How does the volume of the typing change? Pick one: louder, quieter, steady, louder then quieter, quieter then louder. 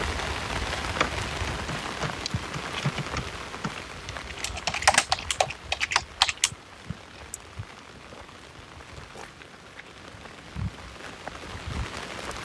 louder.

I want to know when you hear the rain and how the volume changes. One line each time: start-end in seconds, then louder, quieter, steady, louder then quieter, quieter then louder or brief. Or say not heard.
0.0-12.4 quieter then louder.